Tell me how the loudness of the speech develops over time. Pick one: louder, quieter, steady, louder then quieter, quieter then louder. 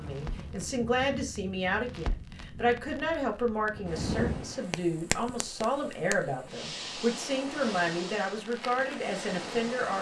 steady.